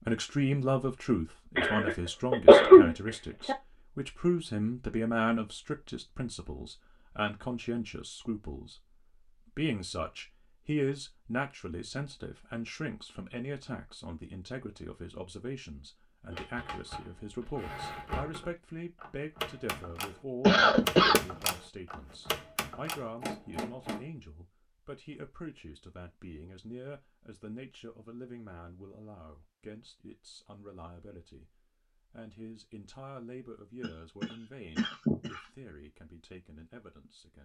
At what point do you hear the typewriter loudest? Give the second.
21 s.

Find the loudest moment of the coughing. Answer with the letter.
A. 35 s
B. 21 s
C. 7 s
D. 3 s
D.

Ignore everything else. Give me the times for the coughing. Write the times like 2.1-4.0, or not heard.
1.6-3.5, 20.4-21.2, 33.8-35.5.